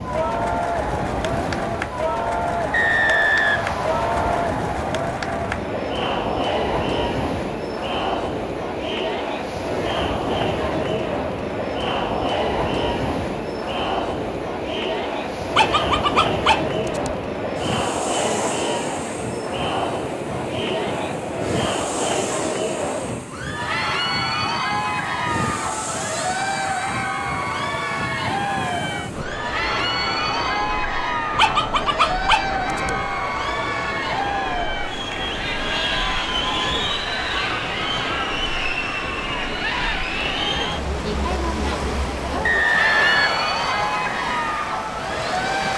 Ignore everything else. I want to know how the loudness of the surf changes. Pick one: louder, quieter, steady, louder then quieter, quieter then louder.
steady.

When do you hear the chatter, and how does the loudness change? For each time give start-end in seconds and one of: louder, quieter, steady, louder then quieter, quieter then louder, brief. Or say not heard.
0.0-45.7 steady.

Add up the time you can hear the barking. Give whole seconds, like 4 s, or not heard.
3 s.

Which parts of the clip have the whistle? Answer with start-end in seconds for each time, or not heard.
2.7-4.5, 42.4-44.0.